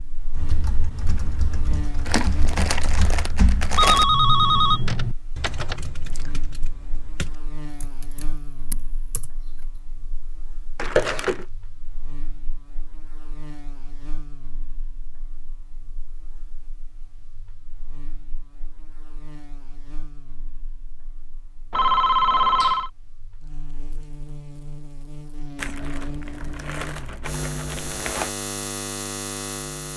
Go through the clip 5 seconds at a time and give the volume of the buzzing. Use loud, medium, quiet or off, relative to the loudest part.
medium, quiet, quiet, quiet, quiet, loud.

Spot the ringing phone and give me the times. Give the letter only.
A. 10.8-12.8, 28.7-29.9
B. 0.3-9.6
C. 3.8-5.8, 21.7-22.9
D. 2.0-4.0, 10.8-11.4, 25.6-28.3
C.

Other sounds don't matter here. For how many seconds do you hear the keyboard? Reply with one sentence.
You can hear the keyboard for 9 seconds altogether.